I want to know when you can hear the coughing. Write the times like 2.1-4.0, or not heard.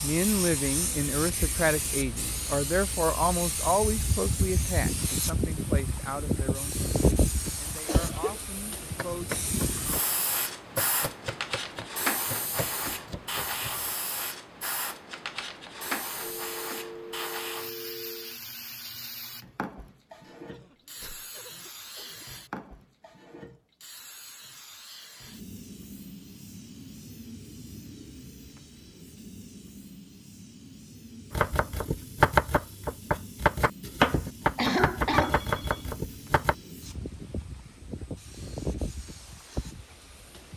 7.8-8.4, 20.2-22.2, 34.5-35.4.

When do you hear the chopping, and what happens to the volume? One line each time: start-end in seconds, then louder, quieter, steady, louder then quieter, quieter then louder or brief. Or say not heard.
8.8-13.9 quieter
31.3-36.5 quieter.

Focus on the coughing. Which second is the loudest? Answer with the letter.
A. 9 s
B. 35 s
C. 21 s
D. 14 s
B.